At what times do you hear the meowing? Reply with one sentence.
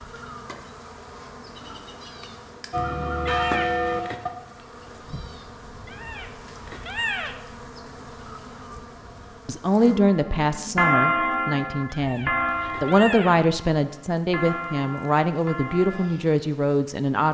The meowing can be heard from 3.2 to 4.2 s, from 5.8 to 7.3 s and from 11.9 to 13.3 s.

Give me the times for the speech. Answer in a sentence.
You can hear the speech from 9.4 to 17.2 s.